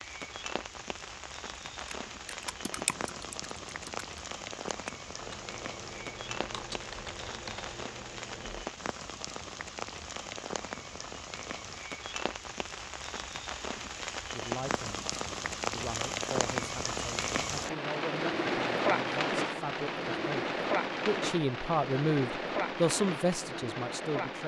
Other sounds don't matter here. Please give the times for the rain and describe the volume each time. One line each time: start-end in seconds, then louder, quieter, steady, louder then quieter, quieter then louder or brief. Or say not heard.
0.0-24.4 louder.